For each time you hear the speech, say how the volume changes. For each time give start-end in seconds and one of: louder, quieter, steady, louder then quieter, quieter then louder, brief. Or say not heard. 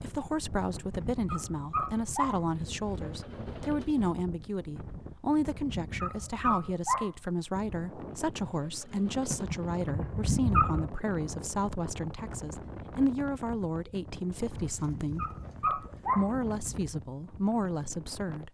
0.0-18.4 steady.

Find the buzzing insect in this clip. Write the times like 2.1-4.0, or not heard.
not heard.